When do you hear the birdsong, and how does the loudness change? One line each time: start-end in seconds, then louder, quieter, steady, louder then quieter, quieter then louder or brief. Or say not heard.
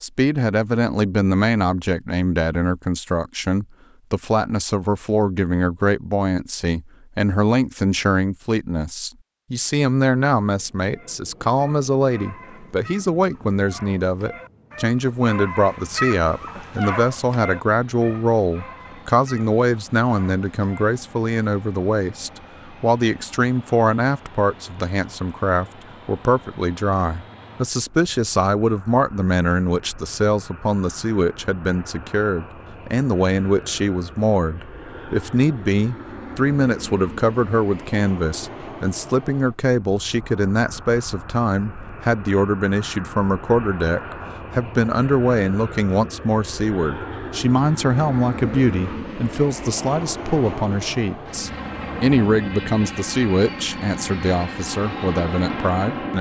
not heard.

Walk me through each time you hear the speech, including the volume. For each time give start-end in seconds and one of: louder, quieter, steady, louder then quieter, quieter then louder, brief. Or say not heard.
0.0-56.1 steady.